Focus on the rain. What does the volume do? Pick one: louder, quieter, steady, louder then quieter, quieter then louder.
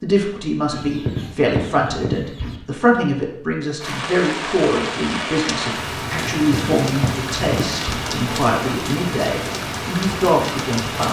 steady.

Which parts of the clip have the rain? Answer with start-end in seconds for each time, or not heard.
3.8-11.0.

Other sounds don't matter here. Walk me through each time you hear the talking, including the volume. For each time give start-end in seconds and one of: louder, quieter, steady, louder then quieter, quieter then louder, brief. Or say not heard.
0.0-11.0 steady.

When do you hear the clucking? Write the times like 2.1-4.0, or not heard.
0.7-2.6, 6.3-8.1.